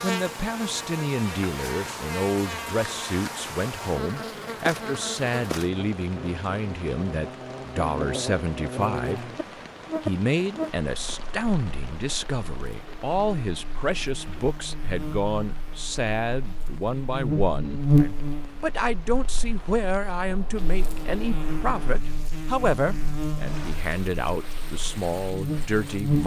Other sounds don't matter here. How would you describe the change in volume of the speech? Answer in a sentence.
The loudness of the speech stays about the same.